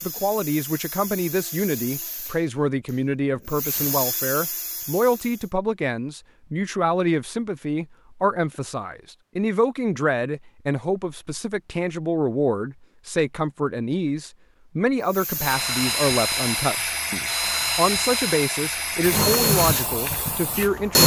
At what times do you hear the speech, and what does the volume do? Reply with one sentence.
The speech can be heard from 0.0 to 21.0 s, at a steady volume.